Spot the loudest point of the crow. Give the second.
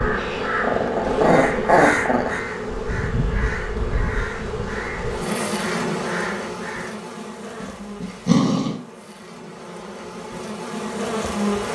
2 s.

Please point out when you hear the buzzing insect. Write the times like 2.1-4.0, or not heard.
0.0-11.7.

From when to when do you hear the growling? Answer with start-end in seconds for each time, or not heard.
0.1-2.4, 7.6-8.8.